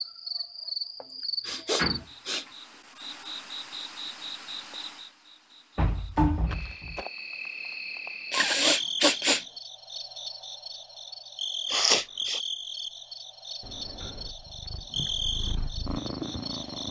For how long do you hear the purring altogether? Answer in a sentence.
You can hear the purring for 3 seconds altogether.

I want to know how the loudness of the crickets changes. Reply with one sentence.
The volume of the crickets stays about the same.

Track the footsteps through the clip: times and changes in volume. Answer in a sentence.
The footsteps can't be heard in this clip.